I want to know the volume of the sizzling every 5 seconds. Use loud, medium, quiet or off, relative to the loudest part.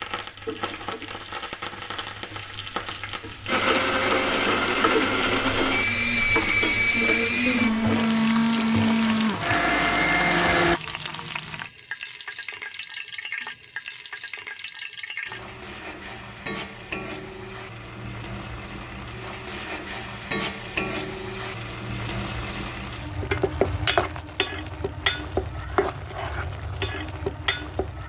loud, loud, medium, medium, loud, loud.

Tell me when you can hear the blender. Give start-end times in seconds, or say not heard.
3.5-10.8.